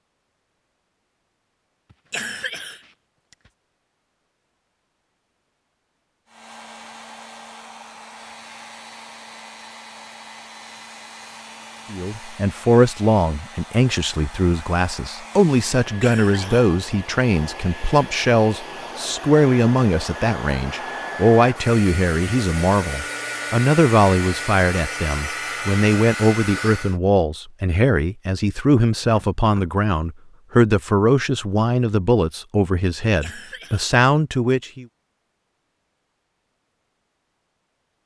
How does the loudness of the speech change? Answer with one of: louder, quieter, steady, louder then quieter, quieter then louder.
steady.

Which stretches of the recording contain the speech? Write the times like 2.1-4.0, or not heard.
11.9-34.9.